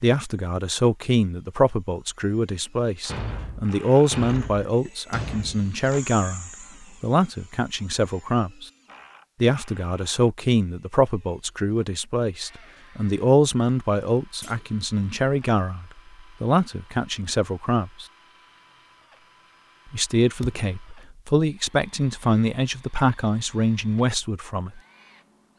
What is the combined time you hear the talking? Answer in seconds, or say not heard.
22 s.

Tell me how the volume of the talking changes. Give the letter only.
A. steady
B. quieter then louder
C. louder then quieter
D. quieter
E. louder
A.